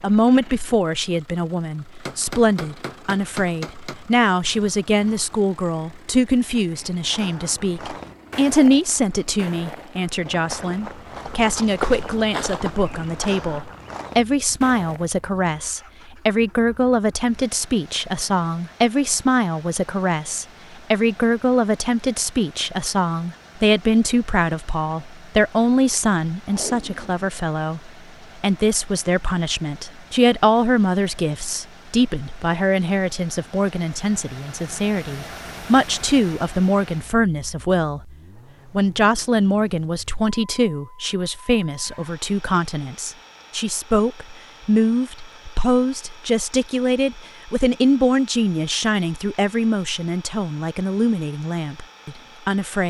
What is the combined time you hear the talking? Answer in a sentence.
The talking can be heard for 52 seconds in total.